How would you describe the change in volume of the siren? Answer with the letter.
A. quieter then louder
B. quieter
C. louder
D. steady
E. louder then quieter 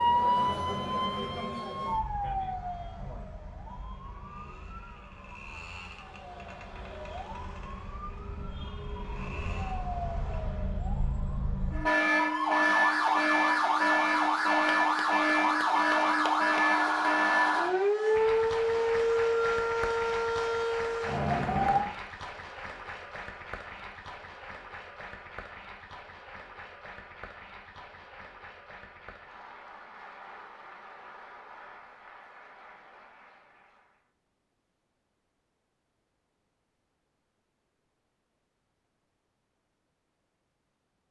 A.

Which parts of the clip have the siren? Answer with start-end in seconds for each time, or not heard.
0.0-21.9.